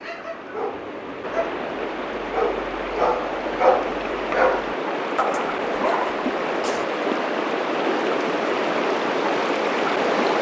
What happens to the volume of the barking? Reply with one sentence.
The volume of the barking goes up, then down.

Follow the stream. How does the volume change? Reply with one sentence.
The loudness of the stream goes up.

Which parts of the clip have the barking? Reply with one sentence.
The barking can be heard from 0.0 to 6.9 s.